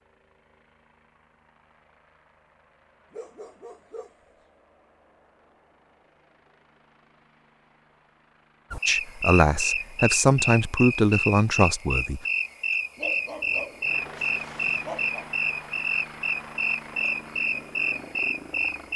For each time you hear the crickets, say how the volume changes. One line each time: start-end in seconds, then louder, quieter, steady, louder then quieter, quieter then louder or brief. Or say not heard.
8.7-18.9 steady.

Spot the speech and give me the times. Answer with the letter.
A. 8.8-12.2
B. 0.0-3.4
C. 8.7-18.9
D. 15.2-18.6
A.